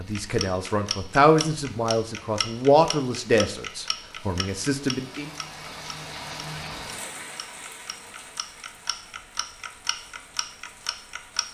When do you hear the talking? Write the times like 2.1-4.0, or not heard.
0.0-5.3.